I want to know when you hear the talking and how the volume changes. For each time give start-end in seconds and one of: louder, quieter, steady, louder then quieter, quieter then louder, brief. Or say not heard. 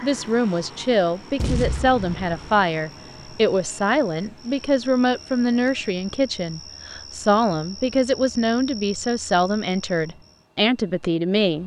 0.0-11.6 steady.